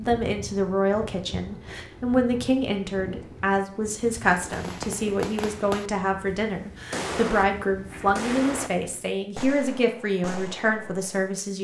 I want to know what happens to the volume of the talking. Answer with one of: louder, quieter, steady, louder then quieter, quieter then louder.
steady.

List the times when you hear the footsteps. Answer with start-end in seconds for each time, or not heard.
not heard.